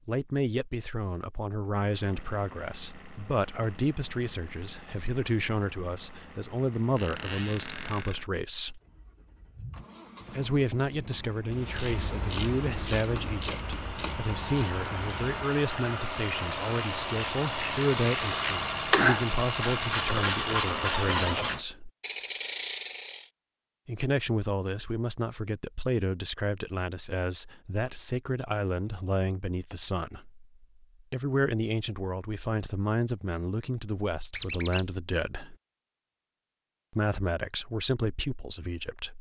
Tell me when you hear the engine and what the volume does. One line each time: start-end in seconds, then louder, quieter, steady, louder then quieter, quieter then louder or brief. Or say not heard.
1.8-21.6 louder.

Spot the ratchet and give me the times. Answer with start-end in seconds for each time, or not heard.
11.5-23.2.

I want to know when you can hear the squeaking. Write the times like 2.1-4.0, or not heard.
7.0-8.2, 20.9-21.5, 34.3-34.9.